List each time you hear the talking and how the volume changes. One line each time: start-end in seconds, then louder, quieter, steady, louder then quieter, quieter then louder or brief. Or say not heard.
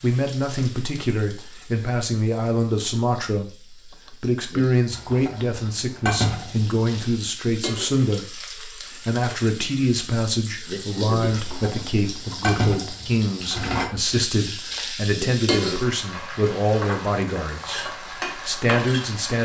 0.0-19.4 steady.